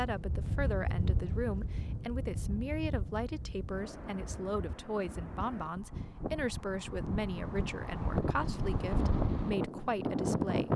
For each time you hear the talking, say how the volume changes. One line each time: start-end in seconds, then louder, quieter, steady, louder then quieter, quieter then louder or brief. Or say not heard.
0.0-10.7 steady.